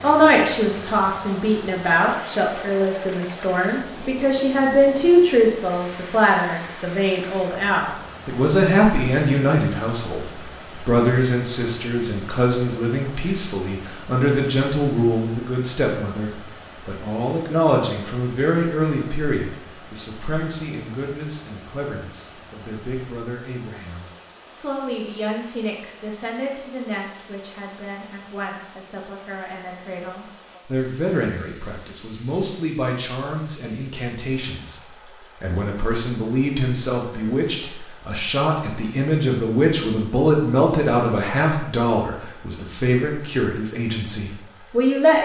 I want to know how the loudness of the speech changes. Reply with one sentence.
The loudness of the speech goes down, then up.